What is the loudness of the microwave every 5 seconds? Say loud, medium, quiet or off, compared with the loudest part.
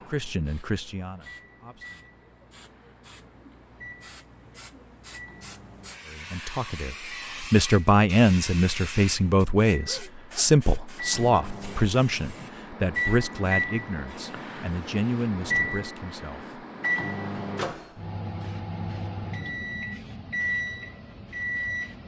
quiet, quiet, loud, loud, loud.